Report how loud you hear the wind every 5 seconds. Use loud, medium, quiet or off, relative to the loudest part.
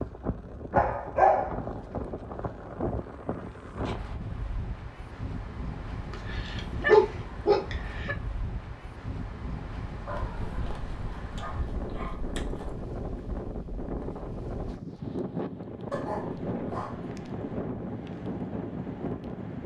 loud, medium, loud, loud.